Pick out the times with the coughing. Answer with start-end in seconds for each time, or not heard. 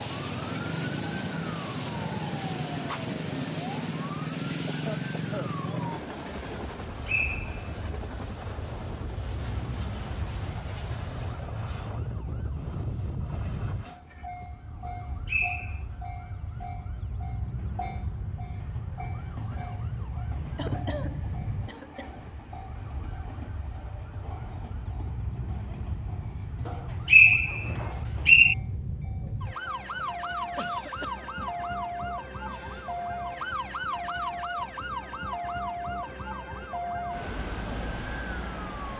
4.7-5.5, 20.6-22.1, 30.6-31.4.